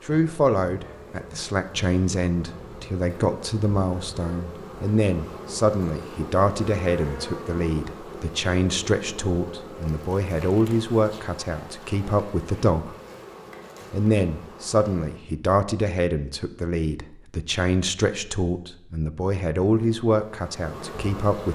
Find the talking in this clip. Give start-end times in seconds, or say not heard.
0.1-12.9, 13.9-21.4.